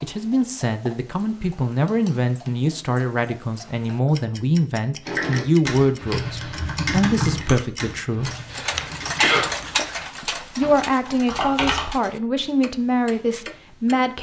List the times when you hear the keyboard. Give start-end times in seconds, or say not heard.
5.0-11.9.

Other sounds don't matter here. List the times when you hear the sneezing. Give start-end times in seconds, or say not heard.
8.5-9.8.